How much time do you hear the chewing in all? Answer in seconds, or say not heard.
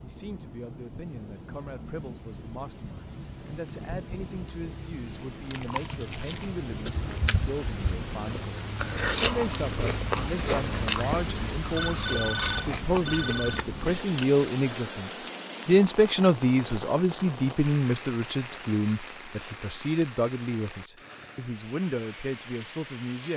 9 s.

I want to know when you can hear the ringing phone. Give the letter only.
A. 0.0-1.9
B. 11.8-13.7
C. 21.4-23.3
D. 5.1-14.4
B.